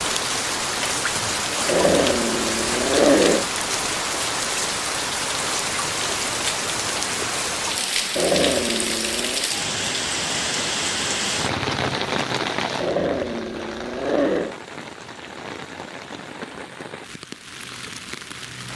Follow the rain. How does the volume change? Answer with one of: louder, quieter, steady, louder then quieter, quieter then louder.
quieter.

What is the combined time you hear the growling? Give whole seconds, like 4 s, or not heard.
5 s.